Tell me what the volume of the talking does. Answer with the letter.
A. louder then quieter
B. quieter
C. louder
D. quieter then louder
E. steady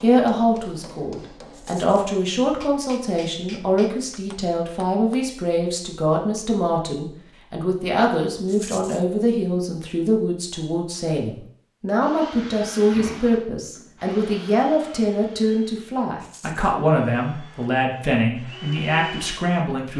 E.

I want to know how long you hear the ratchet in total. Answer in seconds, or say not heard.
not heard.